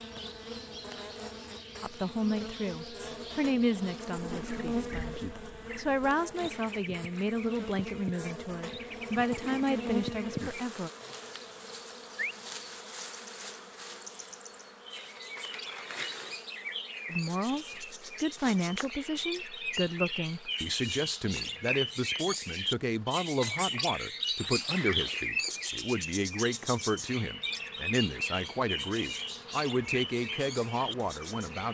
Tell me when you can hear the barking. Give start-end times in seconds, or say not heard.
not heard.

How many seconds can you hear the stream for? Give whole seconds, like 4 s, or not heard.
not heard.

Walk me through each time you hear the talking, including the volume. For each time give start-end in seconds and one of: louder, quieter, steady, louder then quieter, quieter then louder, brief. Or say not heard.
1.8-10.9 quieter then louder
17.1-31.6 steady.